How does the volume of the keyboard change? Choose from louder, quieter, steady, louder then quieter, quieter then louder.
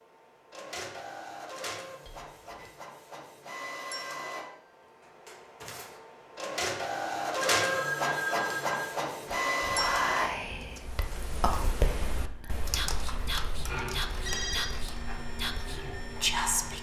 quieter.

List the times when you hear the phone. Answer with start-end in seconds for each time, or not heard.
2.0-2.7, 7.5-8.9, 14.1-14.8.